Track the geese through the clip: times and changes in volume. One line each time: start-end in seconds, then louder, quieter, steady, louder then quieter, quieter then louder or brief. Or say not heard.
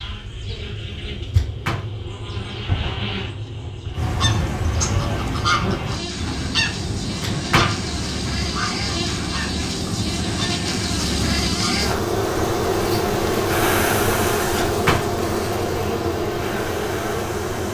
4.0-11.8 quieter.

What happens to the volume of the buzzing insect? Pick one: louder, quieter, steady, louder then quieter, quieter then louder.
louder.